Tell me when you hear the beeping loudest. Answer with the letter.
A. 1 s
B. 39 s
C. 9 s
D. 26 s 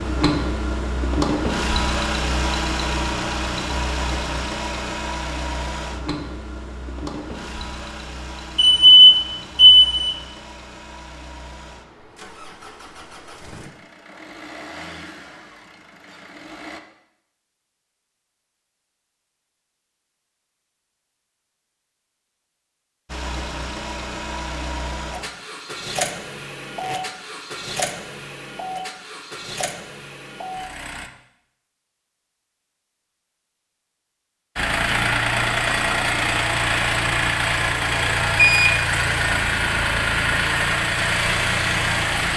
C.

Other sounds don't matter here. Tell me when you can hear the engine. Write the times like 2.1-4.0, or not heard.
0.0-16.8, 23.1-31.1, 34.5-42.3.